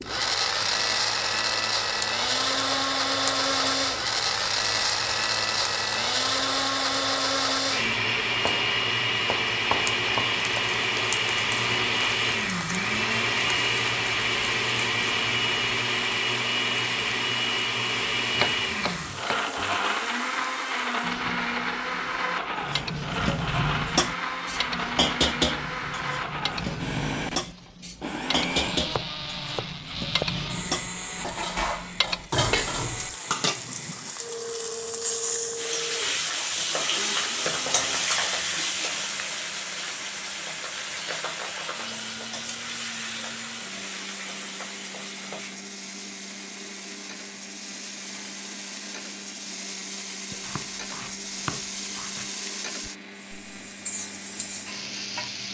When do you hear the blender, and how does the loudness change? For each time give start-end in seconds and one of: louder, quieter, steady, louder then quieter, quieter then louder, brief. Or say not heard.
0.0-55.5 quieter.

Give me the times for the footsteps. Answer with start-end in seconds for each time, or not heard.
not heard.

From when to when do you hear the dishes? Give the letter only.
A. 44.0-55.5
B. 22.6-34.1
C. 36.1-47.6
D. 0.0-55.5
B.